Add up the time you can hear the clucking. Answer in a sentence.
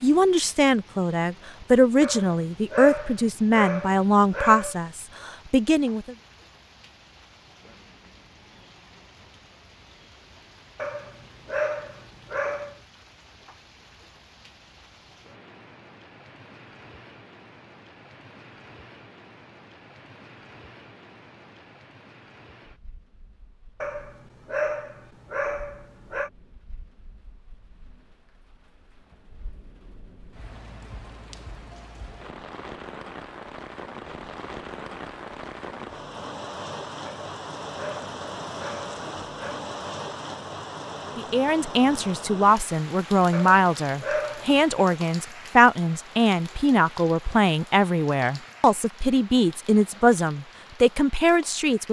You can't hear the clucking here.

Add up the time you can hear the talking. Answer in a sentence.
The talking can be heard for 17 seconds in total.